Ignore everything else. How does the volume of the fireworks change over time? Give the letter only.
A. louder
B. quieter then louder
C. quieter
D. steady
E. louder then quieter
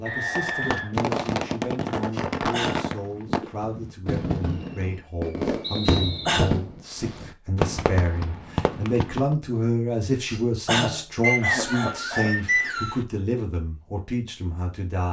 D.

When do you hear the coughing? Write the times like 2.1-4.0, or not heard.
2.1-2.9, 5.8-6.6, 10.2-12.3.